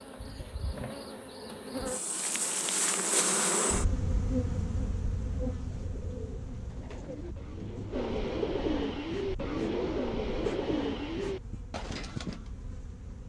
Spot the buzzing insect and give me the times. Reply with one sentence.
The buzzing insect can be heard from 0.0 to 13.2 s.